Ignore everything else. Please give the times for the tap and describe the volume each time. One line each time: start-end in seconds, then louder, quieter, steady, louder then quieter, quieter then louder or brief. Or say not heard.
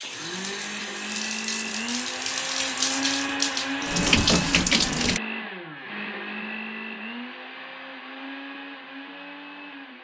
0.0-5.2 louder.